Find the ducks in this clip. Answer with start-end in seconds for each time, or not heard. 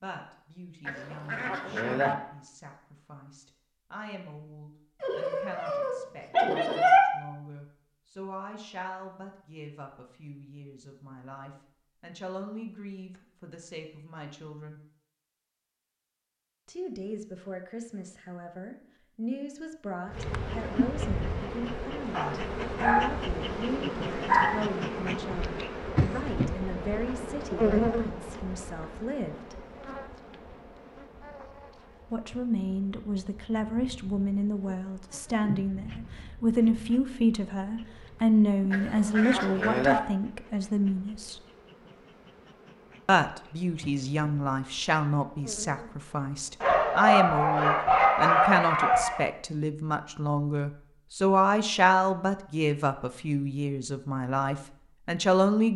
0.8-2.1, 38.7-40.0.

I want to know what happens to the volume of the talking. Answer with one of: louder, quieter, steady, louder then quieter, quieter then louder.
louder.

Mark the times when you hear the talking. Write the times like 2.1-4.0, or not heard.
0.0-14.8, 16.6-29.6, 32.1-41.4, 43.0-55.7.